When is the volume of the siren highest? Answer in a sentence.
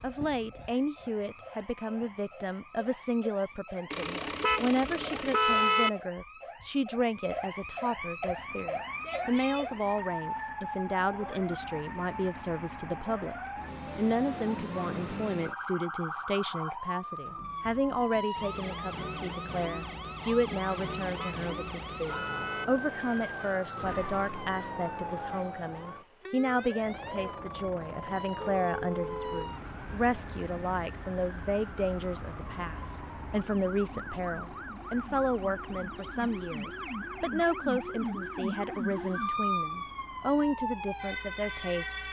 The loudest moment of the siren is at 39 seconds.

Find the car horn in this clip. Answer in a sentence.
The car horn can be heard from 3.9 to 5.9 s, from 20.6 to 22.6 s and from 28.6 to 29.5 s.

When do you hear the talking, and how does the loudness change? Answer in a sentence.
The talking can be heard from 0.0 to 13.3 s, at a steady volume; and from 13.9 to 42.0 s, at a steady volume.